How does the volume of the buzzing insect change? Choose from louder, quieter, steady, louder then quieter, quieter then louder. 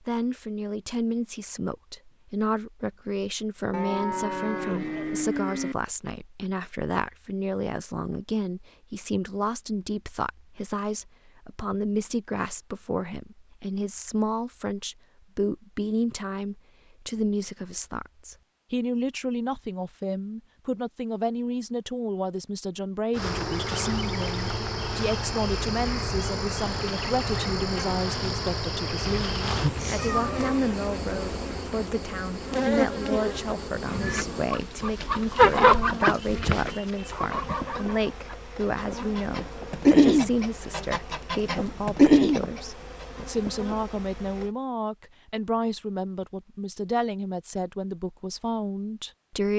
quieter.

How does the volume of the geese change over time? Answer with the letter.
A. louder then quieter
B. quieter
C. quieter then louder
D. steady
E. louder
C.